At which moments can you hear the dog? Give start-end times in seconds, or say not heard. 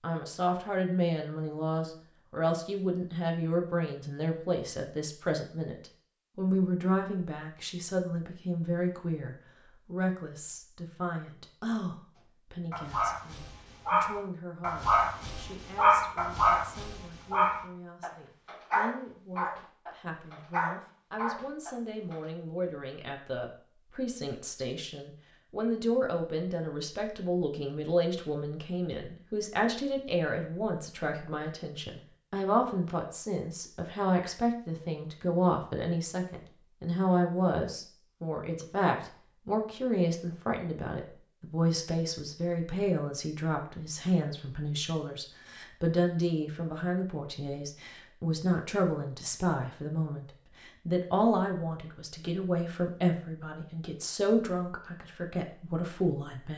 12.7-22.2.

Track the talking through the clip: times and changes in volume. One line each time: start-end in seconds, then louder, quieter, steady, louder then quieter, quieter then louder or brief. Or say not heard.
0.0-56.5 quieter then louder.